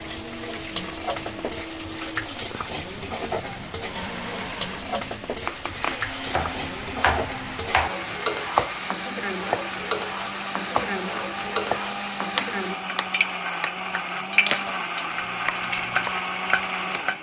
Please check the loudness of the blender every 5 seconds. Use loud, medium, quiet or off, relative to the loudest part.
medium, medium, loud, loud.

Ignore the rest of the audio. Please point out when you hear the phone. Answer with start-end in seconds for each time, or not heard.
not heard.